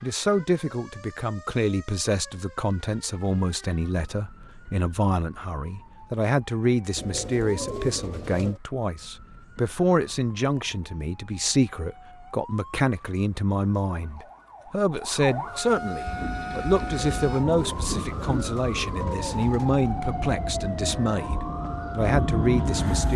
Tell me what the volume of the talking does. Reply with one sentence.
The volume of the talking stays about the same.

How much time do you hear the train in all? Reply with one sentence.
You can hear the train for 7 seconds altogether.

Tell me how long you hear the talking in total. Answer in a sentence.
The talking can be heard for 23 seconds in total.